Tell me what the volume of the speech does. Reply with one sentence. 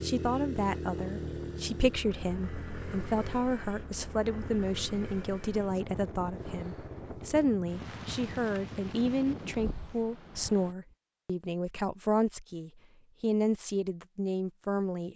The volume of the speech stays about the same.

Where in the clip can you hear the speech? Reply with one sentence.
The speech can be heard from 0.0 to 15.1 s.